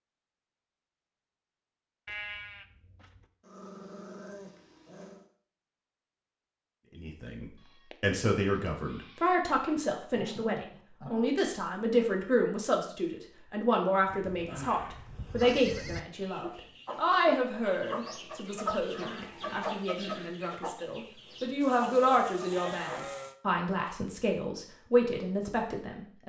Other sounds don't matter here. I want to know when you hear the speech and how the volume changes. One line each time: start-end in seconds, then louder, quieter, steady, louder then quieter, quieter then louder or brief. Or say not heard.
7.0-26.2 steady.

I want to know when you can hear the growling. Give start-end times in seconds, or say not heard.
3.4-5.3, 10.1-11.3, 18.8-20.4.